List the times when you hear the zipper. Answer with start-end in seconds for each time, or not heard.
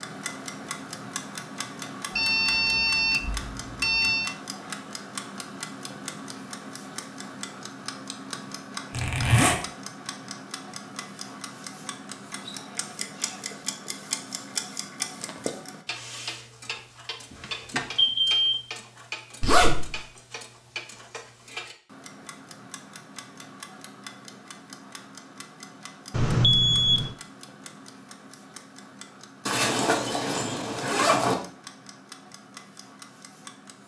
8.9-9.6, 19.4-20.0, 29.4-31.4.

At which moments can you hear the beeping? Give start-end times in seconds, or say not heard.
2.1-4.3, 17.3-18.6, 26.1-27.1.